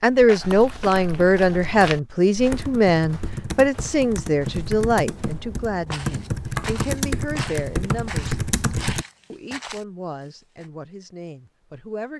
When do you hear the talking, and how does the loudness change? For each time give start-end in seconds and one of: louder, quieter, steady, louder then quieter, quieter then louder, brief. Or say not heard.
0.0-8.3 quieter
9.3-12.1 brief.